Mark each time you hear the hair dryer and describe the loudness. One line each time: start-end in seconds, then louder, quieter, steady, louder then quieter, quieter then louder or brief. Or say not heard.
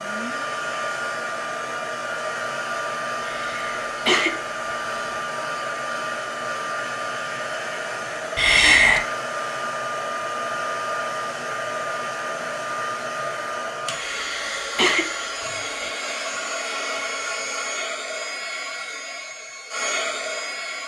0.0-20.8 steady.